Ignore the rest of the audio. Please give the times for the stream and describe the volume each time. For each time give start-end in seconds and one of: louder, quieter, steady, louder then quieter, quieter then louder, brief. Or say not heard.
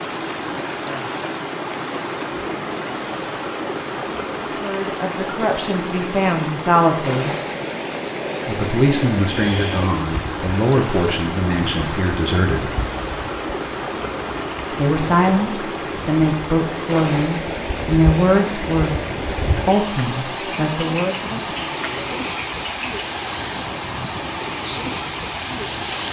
0.0-26.0 steady.